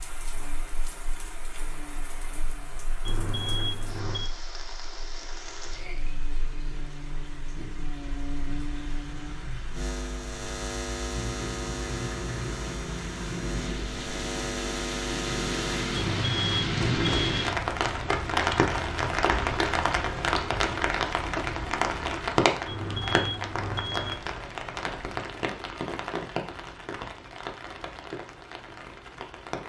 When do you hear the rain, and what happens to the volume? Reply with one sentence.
You can hear the rain from 0.0 to 29.6 s, getting louder then quieter.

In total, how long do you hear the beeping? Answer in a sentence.
You can hear the beeping for 4 seconds altogether.